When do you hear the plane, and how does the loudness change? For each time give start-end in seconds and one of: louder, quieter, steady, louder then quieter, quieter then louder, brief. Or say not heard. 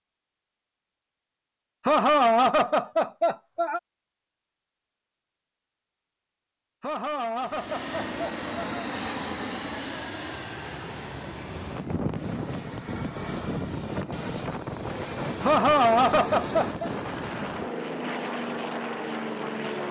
7.4-19.8 steady.